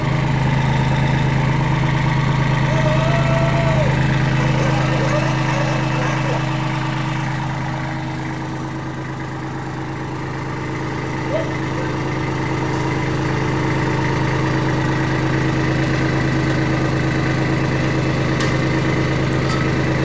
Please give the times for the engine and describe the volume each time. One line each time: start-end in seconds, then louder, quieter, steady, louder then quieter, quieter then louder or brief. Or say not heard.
0.0-19.9 quieter then louder.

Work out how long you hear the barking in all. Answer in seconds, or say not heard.
2 s.